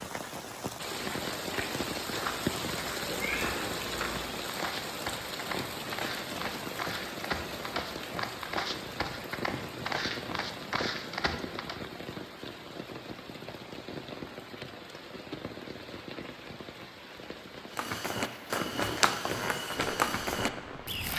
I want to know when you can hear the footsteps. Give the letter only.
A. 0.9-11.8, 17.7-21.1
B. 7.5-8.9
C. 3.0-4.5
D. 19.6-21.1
A.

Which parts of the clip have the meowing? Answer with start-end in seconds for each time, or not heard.
3.0-4.5.